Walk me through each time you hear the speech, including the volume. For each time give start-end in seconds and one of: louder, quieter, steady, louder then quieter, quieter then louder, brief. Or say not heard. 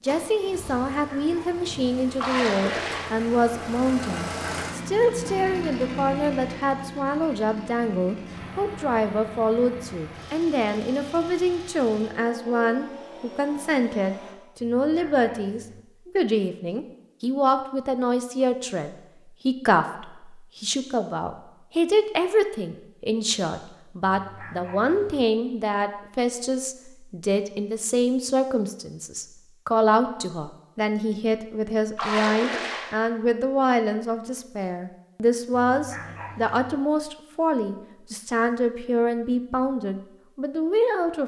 0.0-41.2 steady.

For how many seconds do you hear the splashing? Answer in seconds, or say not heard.
2 s.